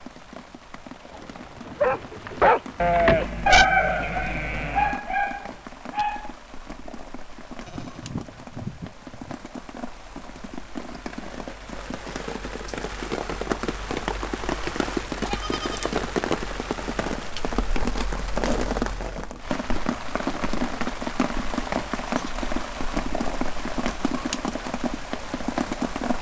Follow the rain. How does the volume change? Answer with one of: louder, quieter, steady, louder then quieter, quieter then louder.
louder.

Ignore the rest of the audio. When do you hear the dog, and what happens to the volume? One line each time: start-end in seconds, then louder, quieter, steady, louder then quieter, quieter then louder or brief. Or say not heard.
1.1-6.3 louder then quieter.